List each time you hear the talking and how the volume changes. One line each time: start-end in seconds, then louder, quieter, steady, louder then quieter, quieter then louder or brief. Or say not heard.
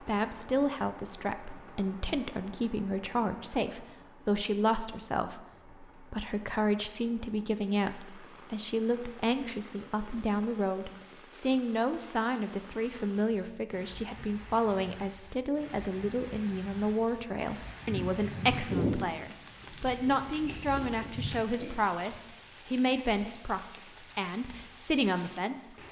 0.0-25.8 steady.